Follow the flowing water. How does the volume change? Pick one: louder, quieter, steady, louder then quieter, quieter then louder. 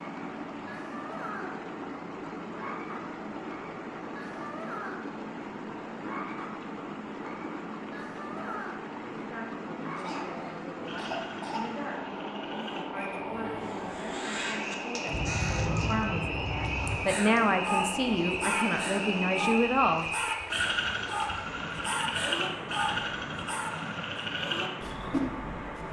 steady.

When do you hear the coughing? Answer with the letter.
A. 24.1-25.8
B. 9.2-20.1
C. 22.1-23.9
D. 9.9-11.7
D.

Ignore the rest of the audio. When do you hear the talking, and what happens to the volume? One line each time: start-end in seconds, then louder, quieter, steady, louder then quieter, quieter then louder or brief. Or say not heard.
9.2-20.1 louder.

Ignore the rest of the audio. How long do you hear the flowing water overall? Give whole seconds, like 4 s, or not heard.
26 s.